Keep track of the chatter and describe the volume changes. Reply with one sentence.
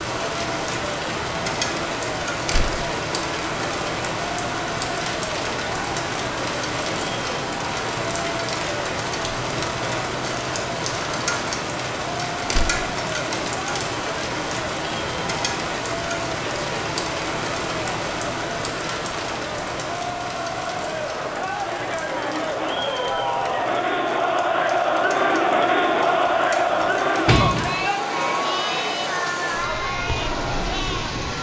The loudness of the chatter goes up.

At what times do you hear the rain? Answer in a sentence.
You can hear the rain from 0.0 to 31.3 s.